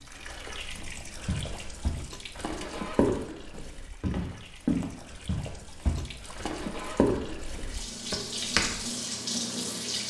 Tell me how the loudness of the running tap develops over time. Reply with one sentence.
The volume of the running tap goes down, then up.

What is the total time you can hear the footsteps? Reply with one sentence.
You can hear the footsteps for 8 seconds altogether.